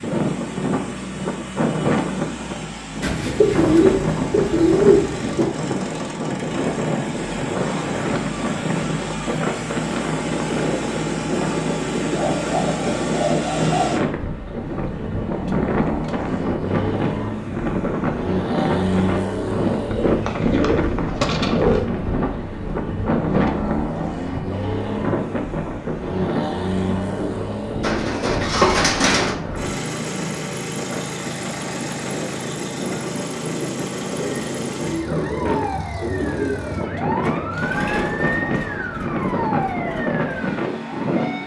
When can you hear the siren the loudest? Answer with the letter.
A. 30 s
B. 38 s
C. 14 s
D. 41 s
B.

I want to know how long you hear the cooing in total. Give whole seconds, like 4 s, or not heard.
10 s.